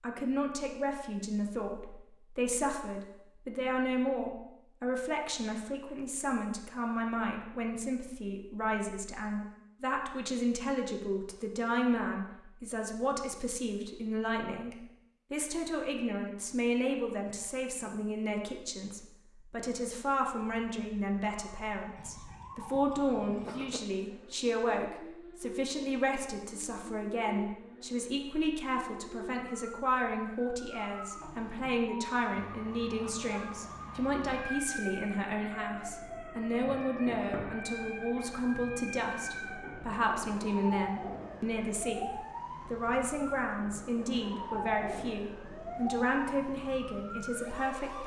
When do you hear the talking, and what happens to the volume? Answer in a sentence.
The talking can be heard from 0.0 to 48.0 s, at a steady volume.